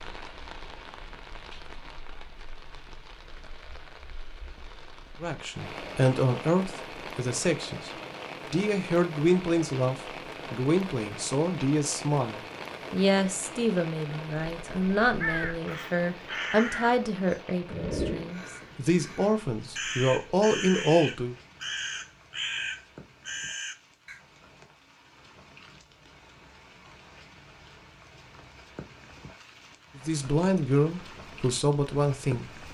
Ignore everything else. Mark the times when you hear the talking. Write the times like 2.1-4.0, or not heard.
5.2-7.9, 8.5-21.4, 29.9-32.6.